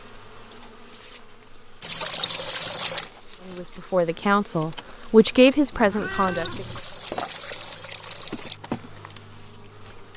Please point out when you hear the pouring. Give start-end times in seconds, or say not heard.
1.8-3.1, 6.0-8.6.